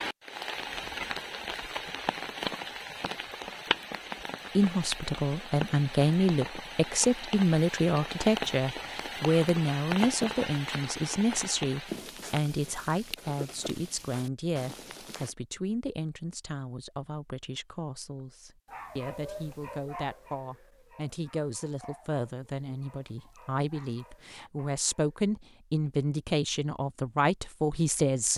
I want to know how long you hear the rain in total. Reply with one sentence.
You can hear the rain for 15 seconds altogether.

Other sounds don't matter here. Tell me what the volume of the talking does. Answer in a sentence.
The loudness of the talking goes down, then up.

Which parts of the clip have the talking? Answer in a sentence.
The talking can be heard from 4.5 to 28.3 s.